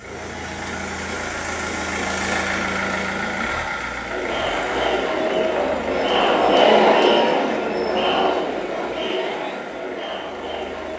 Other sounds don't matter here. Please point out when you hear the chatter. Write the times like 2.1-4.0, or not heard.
4.0-10.9.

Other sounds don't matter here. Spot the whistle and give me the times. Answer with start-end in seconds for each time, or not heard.
not heard.